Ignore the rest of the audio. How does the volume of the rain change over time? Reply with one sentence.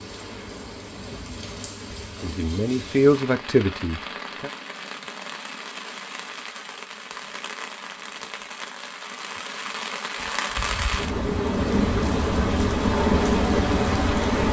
The volume of the rain goes up.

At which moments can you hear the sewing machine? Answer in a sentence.
The sewing machine can be heard from 12.9 to 14.4 s.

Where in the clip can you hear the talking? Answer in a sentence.
You can hear the talking from 2.2 to 4.5 s.